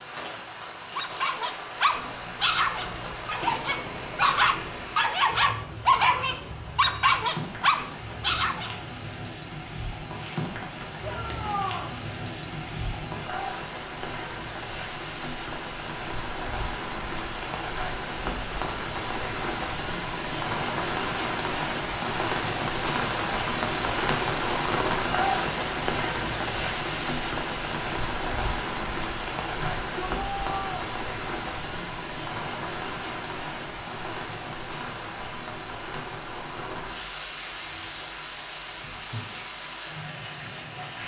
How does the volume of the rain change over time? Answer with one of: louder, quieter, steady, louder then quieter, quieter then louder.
louder then quieter.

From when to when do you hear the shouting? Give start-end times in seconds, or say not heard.
11.0-11.9, 29.6-30.9.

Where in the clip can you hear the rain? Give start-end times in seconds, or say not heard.
0.0-41.0.